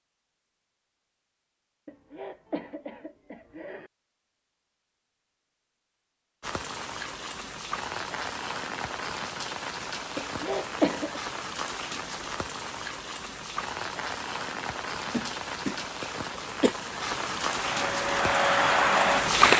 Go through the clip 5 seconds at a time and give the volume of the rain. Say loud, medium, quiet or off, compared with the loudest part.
off, medium, medium, loud.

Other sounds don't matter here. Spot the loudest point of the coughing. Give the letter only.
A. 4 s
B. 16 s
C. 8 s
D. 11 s
D.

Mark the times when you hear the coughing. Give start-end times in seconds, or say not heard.
1.9-3.9, 10.2-11.2, 15.1-16.8.